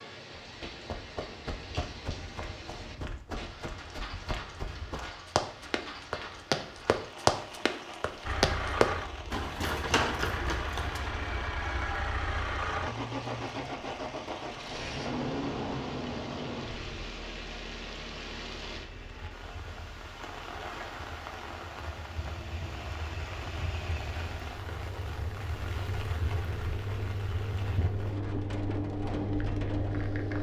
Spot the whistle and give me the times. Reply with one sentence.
The whistle can't be heard in this clip.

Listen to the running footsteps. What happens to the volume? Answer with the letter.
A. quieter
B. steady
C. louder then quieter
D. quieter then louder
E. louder
E.